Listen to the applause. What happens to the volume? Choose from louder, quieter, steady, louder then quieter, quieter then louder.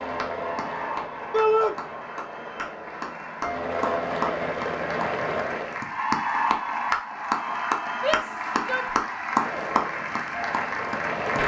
louder.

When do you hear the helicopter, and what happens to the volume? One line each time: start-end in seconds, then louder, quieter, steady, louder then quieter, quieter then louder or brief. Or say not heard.
0.0-5.8 quieter then louder
9.3-11.4 brief.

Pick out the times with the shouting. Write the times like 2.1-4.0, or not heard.
1.3-1.8, 8.0-8.9.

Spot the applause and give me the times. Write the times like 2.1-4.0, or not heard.
0.0-11.4.